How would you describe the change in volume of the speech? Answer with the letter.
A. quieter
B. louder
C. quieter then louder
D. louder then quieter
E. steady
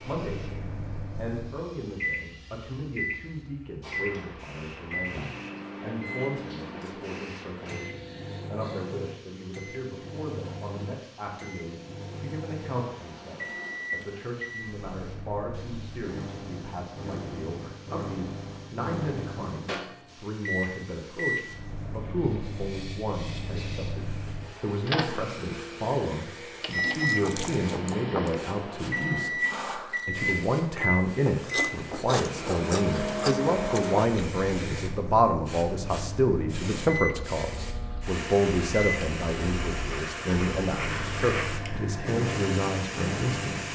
B.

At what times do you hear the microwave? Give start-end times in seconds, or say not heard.
0.1-43.7.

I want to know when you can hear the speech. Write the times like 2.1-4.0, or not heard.
0.0-43.6.